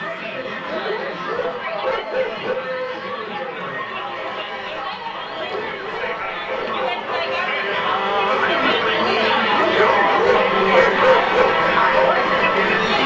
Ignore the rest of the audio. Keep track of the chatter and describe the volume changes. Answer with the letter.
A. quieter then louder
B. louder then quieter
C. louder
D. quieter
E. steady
C.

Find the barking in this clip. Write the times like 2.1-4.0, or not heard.
0.6-2.5, 5.2-7.2, 9.5-11.4.